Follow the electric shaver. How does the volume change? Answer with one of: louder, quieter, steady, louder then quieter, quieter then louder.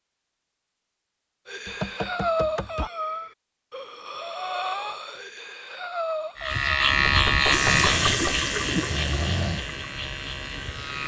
quieter.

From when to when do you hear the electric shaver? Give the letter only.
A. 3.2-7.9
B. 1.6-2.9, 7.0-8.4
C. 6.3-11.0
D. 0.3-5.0
C.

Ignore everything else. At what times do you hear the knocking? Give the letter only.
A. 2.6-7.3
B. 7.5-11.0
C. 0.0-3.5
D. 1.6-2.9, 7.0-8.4
D.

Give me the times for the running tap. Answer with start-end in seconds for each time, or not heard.
7.5-11.0.